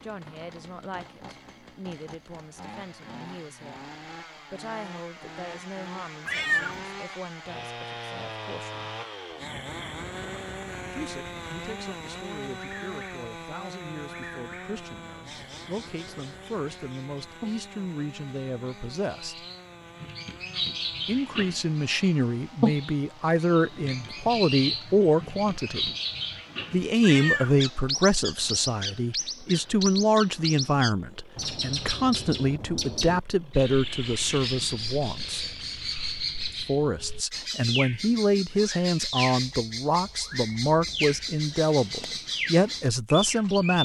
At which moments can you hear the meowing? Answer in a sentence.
You can hear the meowing from 6.2 to 6.8 s and from 27.0 to 27.6 s.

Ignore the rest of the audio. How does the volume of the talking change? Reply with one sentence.
The volume of the talking goes up.